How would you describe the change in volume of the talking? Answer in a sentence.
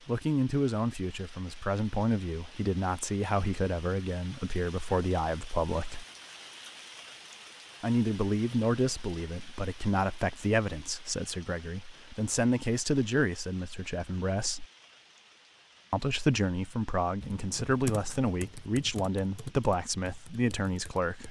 The loudness of the talking stays about the same.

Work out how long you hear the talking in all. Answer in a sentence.
You can hear the talking for 18 seconds altogether.